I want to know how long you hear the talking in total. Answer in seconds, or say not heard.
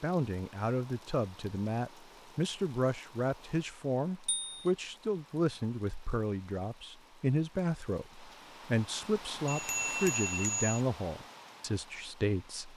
13 s.